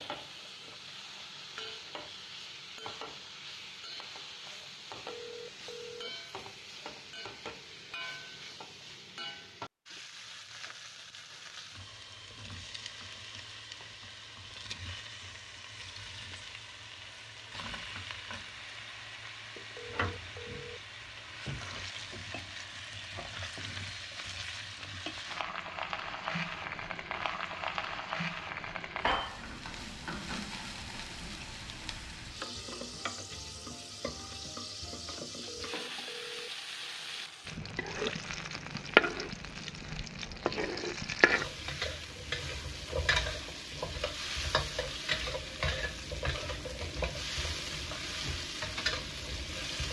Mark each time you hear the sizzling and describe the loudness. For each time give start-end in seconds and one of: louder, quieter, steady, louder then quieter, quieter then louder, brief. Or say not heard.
0.0-49.8 louder.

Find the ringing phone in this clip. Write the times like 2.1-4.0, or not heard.
5.0-6.2, 19.7-20.9, 35.5-36.5.